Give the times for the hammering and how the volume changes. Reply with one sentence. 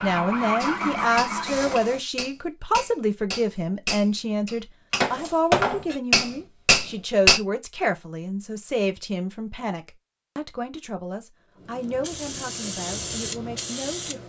The hammering can be heard from 0.6 to 7.4 s, getting louder.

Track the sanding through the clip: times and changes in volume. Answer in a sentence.
You can't hear the sanding here.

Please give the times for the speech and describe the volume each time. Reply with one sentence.
The speech can be heard from 0.0 to 14.2 s, getting quieter.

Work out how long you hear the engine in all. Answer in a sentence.
The engine can be heard for 2 seconds in total.